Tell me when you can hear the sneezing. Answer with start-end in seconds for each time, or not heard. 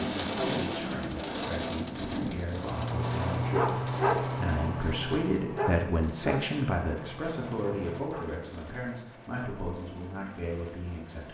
not heard.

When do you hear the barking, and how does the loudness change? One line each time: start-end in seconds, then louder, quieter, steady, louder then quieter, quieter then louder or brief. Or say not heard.
2.6-8.4 quieter.